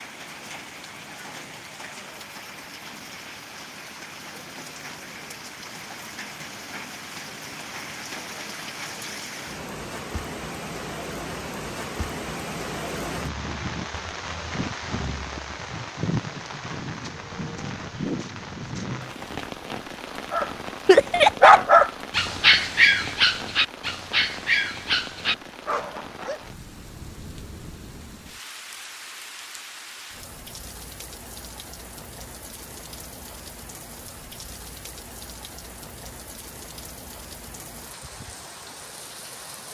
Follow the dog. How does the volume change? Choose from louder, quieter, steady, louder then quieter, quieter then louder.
quieter.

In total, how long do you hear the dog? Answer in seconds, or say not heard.
6 s.